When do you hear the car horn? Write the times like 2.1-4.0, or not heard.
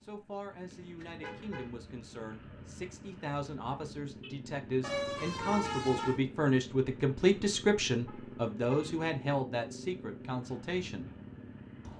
0.7-1.7, 4.8-6.2, 8.1-9.1.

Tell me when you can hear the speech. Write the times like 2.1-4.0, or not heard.
0.0-11.1.